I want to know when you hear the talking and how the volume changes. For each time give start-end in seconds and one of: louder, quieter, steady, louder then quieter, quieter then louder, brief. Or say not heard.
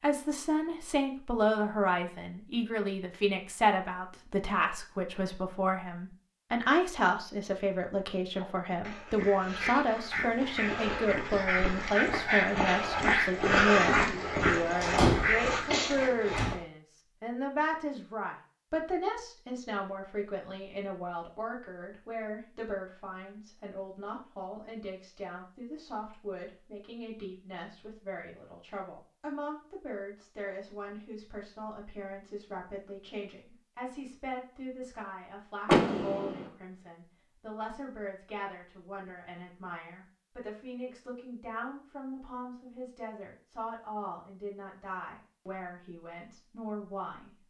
0.0-47.4 quieter.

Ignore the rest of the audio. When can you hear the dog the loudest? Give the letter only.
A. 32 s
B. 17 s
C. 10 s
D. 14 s
D.